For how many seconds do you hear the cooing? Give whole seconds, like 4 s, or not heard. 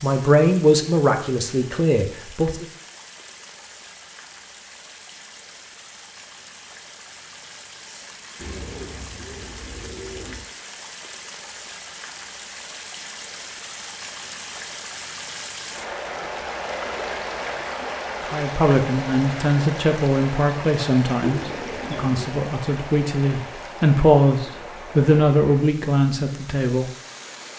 3 s.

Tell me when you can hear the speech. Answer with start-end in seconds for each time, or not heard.
0.0-2.6, 18.3-26.9.